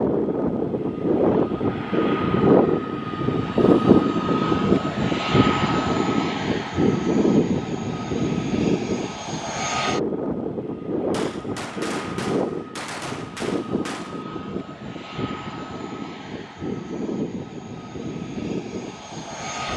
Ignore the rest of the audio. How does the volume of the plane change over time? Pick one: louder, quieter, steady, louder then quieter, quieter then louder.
quieter.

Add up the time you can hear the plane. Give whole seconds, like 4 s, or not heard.
20 s.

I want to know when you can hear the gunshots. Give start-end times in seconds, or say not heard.
11.1-14.2.